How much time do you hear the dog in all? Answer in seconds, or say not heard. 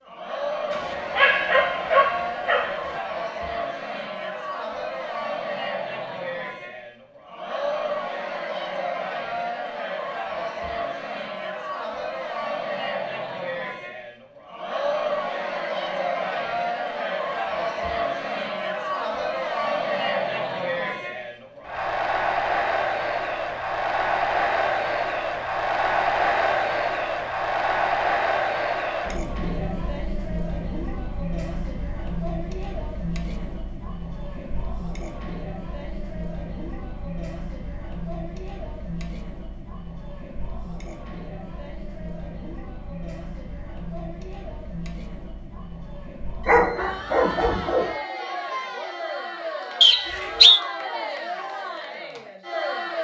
4 s.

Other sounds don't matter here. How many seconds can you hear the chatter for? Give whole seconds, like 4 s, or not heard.
53 s.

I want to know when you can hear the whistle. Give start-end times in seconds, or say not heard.
49.8-50.6.